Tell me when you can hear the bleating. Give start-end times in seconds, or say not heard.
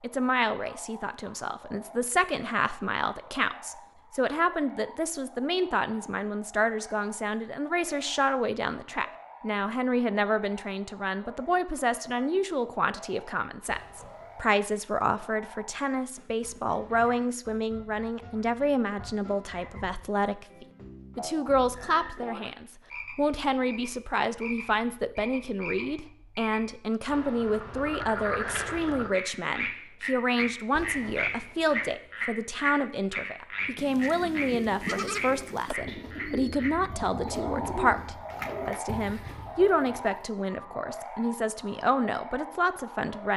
33.8-35.8.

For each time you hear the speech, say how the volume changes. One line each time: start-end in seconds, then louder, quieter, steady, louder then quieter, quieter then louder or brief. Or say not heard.
0.0-43.3 steady.